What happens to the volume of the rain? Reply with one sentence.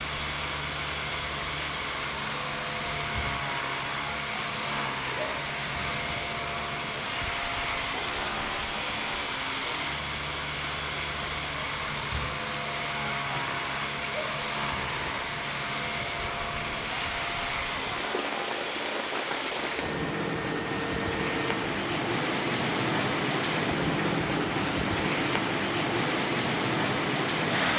The loudness of the rain goes up.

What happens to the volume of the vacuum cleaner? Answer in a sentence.
The volume of the vacuum cleaner stays about the same.